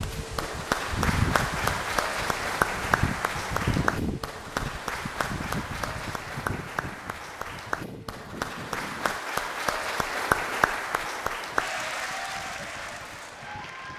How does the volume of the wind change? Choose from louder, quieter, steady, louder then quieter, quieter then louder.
quieter.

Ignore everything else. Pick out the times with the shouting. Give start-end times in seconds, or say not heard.
not heard.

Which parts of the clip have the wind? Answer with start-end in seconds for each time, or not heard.
0.0-13.9.